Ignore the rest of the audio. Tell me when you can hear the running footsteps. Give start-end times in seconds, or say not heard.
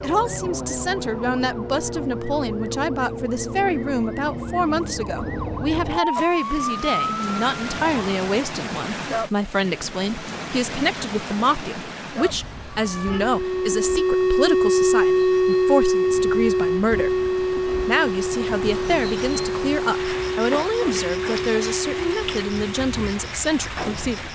not heard.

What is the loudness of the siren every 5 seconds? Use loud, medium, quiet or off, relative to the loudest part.
medium, medium, loud, loud, medium.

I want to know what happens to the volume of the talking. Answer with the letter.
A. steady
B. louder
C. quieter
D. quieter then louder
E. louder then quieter
A.